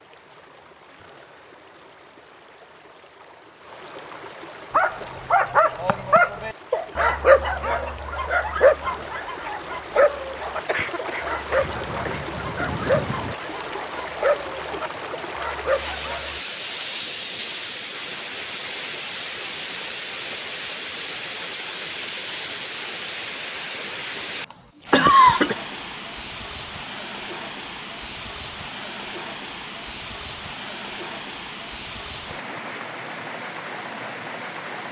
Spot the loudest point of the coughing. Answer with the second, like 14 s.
25 s.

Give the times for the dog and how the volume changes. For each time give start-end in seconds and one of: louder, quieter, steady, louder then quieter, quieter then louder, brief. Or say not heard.
4.7-16.4 quieter.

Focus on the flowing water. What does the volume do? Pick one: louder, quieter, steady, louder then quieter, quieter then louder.
louder.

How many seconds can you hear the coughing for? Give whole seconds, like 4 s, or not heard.
4 s.